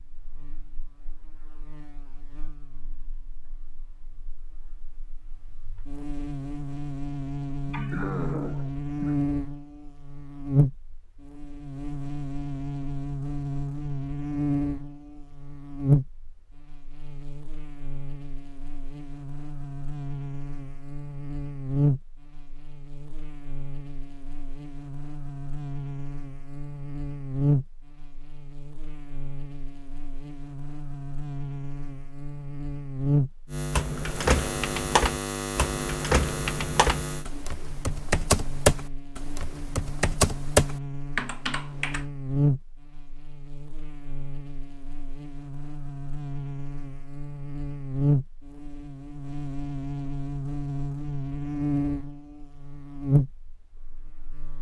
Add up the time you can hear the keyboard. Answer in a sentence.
You can hear the keyboard for 8 seconds altogether.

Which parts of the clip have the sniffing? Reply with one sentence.
The sniffing can be heard from 7.6 to 9.2 s.